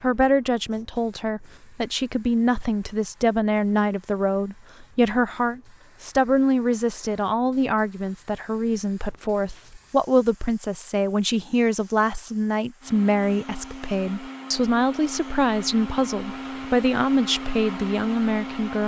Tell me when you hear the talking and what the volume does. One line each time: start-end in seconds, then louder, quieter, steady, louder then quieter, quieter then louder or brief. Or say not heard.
0.0-18.8 steady.